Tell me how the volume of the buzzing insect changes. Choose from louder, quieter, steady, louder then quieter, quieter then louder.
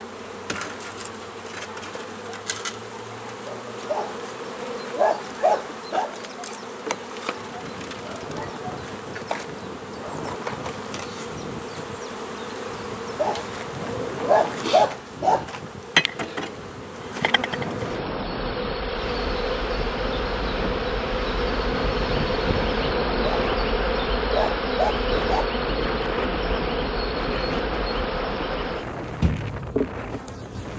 louder.